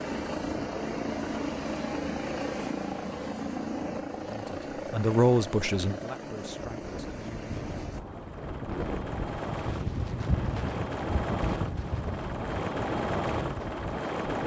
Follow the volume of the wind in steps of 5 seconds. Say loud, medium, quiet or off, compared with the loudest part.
off, loud, loud.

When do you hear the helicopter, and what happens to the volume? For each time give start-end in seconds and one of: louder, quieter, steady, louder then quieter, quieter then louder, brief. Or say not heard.
0.0-14.4 quieter then louder.